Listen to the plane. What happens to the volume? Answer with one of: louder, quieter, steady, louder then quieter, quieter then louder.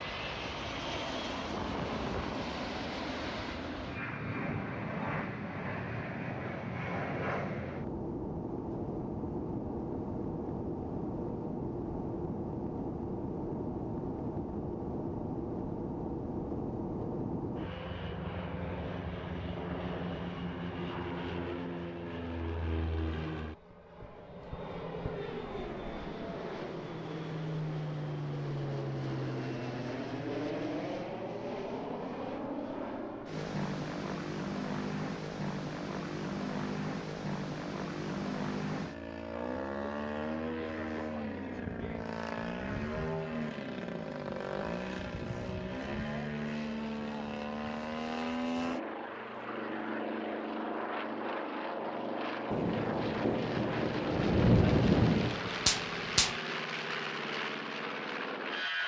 steady.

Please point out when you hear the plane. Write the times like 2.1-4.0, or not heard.
0.0-58.8.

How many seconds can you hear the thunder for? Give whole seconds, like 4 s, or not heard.
4 s.